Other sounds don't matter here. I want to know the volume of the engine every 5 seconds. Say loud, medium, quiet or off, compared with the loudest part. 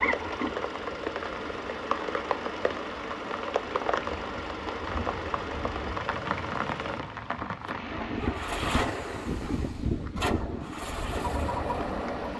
medium, loud, loud.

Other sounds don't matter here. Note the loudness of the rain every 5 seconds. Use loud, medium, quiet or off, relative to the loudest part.
loud, loud, medium.